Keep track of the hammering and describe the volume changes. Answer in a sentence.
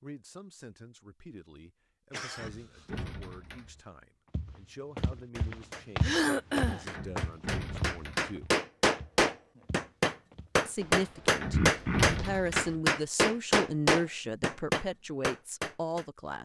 The loudness of the hammering goes up.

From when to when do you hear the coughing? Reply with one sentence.
You can hear the coughing from 2.1 to 2.9 s, from 6.0 to 6.8 s and from 11.5 to 12.2 s.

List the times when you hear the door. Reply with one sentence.
The door can be heard from 2.4 to 3.8 s, from 6.9 to 8.3 s and from 11.4 to 12.8 s.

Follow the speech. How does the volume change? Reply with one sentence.
The volume of the speech goes up.